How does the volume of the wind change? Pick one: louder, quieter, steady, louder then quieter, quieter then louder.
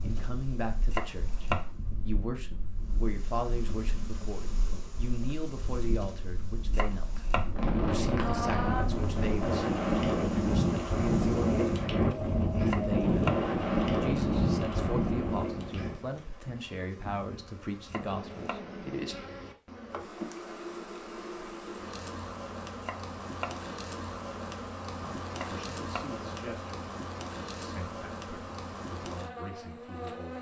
louder.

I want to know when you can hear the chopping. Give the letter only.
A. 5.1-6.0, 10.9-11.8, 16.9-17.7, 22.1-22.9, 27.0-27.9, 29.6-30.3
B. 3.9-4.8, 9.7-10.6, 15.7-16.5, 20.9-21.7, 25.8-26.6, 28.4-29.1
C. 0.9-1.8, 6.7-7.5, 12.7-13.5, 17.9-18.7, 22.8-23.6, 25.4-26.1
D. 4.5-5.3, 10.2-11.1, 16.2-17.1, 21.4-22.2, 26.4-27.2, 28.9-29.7
C.